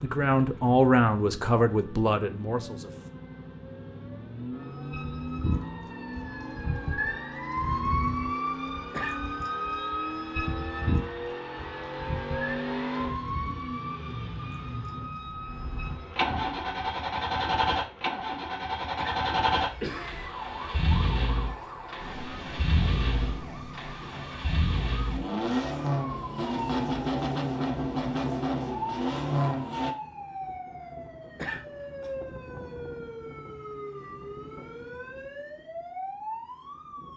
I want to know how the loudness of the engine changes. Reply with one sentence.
The volume of the engine goes up.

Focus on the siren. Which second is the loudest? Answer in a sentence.
The volume of the siren peaks at 8 seconds.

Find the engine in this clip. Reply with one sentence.
You can hear the engine from 0.0 to 29.9 s.